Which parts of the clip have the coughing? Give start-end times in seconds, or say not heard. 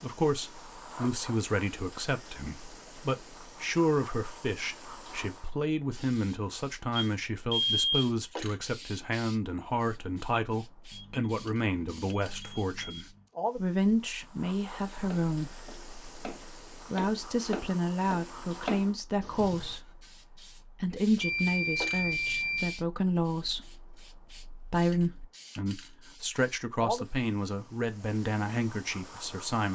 not heard.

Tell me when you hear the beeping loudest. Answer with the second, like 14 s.
8 s.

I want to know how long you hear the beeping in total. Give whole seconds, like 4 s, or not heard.
5 s.